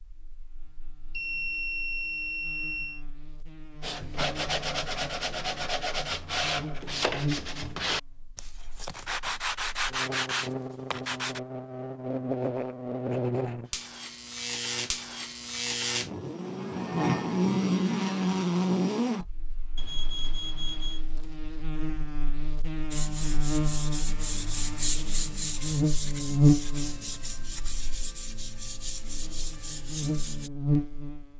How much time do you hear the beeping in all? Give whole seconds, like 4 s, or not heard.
3 s.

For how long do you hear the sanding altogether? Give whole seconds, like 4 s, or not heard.
15 s.